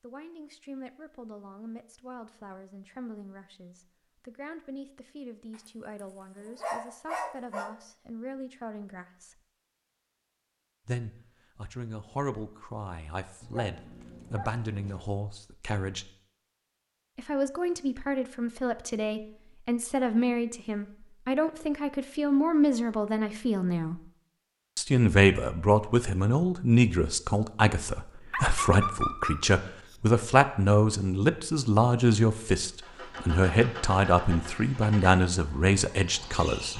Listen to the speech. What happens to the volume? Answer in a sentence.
The volume of the speech goes up.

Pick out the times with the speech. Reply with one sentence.
You can hear the speech from 0.0 to 9.3 s, from 10.8 to 16.1 s, from 17.1 to 24.0 s and from 24.8 to 36.7 s.